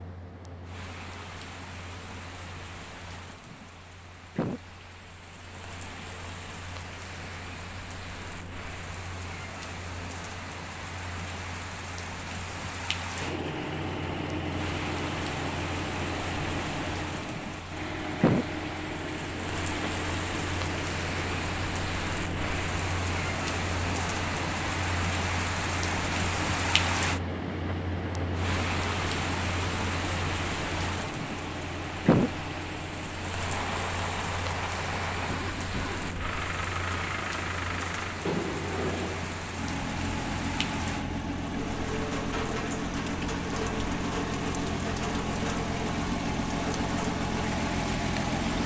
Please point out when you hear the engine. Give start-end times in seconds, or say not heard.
13.2-48.6.